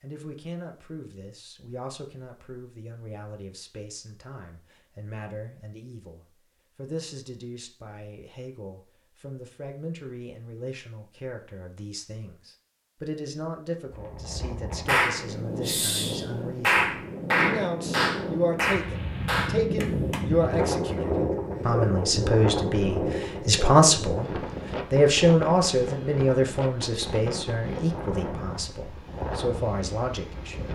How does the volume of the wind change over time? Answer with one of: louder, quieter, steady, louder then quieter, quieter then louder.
louder then quieter.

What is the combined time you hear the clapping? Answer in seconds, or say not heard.
5 s.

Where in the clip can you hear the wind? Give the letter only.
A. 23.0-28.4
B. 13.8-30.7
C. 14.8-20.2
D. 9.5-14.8
B.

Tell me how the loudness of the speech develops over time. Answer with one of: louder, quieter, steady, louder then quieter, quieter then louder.
louder.